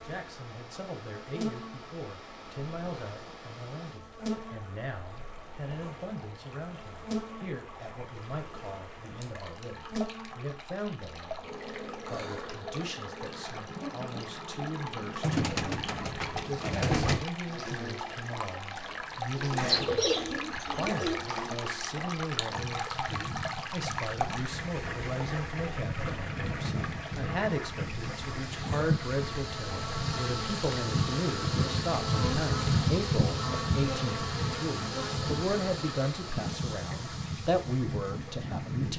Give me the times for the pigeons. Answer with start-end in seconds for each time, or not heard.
15.2-17.2, 19.6-21.2.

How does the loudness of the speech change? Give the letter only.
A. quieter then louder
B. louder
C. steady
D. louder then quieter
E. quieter
B.